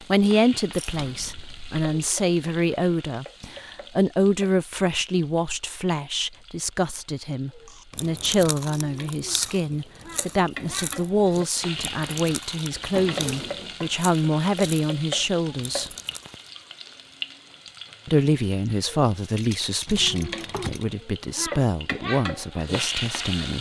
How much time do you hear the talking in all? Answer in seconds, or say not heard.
21 s.